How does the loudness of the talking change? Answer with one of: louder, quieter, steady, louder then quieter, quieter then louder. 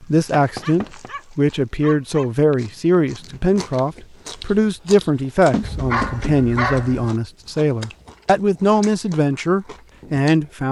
steady.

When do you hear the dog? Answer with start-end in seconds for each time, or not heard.
0.0-2.3, 5.6-7.2.